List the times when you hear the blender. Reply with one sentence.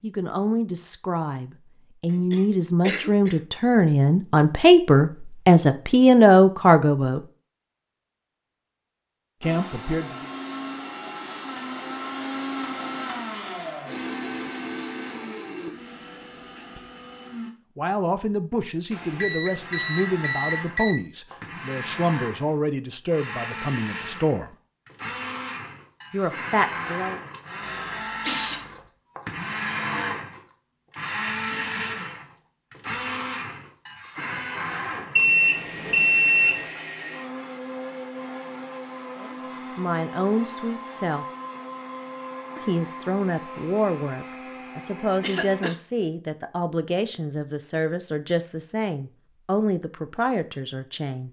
The blender can be heard from 9.4 to 17.5 s and from 19.5 to 45.6 s.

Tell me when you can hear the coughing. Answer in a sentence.
The coughing can be heard from 2.1 to 3.4 s, from 27.6 to 28.8 s and from 45.2 to 45.8 s.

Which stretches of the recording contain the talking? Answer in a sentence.
You can hear the talking from 0.0 to 7.2 s, from 9.4 to 10.3 s, from 17.8 to 24.6 s, from 26.1 to 27.2 s, from 39.2 to 41.2 s and from 42.5 to 51.2 s.